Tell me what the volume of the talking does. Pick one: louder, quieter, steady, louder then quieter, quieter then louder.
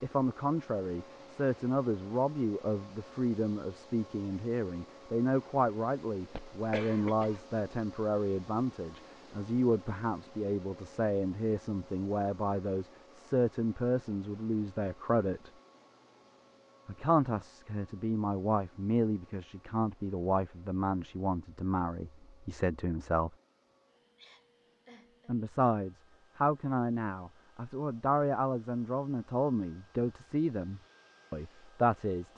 steady.